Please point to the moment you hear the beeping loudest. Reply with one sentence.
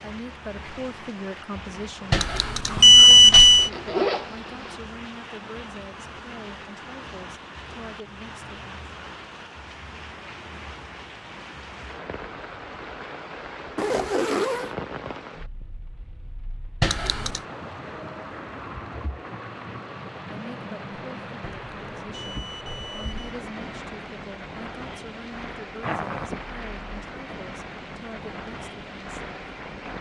The loudest moment of the beeping is at 3 seconds.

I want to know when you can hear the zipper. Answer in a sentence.
You can hear the zipper from 3.5 to 4.8 s, from 13.8 to 14.8 s and from 25.8 to 26.4 s.